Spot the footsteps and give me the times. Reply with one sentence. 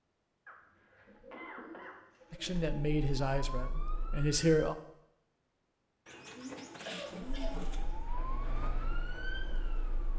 You can't hear the footsteps here.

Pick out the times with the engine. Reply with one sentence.
The engine can be heard from 7.0 to 10.1 s.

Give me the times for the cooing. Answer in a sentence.
You can hear the cooing from 1.1 to 2.8 s and from 6.0 to 7.8 s.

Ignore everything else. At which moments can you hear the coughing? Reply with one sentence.
The coughing can be heard from 0.5 to 2.0 s and from 6.8 to 7.7 s.